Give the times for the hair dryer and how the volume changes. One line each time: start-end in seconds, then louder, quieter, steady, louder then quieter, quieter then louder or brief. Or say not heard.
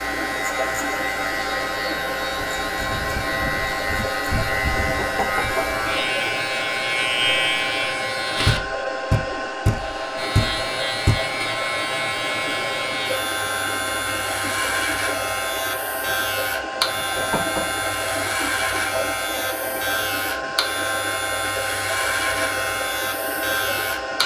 0.0-24.2 steady.